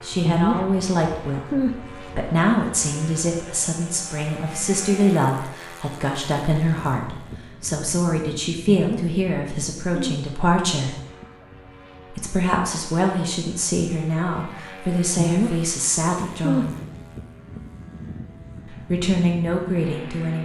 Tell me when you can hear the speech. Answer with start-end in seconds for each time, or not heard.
0.0-1.5, 2.1-10.9, 12.1-16.8, 18.7-20.3.